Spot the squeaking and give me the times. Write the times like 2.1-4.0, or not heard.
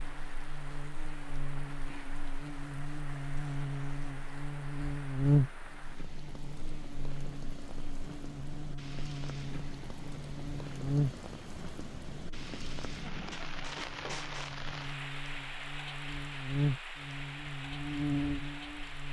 13.2-14.6.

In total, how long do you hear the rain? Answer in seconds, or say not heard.
19 s.